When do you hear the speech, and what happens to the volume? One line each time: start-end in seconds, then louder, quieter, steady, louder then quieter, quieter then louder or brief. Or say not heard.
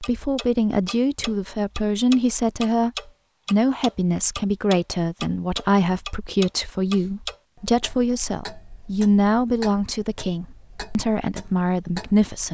0.0-2.9 brief
3.5-12.5 steady.